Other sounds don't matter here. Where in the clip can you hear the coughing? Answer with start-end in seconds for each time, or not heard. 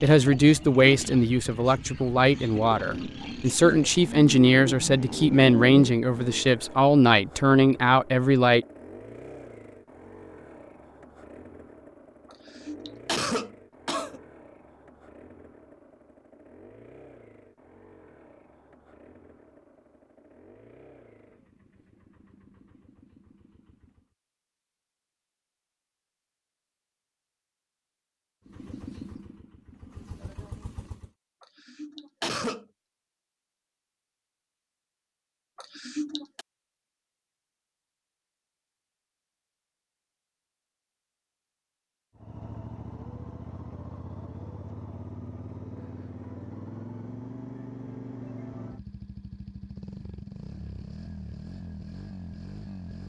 12.3-14.2, 31.4-32.6, 35.5-36.5.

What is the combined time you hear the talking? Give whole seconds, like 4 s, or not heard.
9 s.